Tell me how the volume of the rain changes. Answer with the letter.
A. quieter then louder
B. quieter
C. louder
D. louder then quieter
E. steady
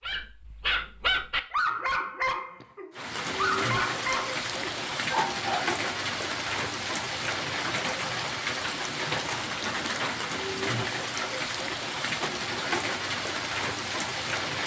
E.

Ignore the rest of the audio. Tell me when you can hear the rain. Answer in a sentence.
You can hear the rain from 2.9 to 14.6 s.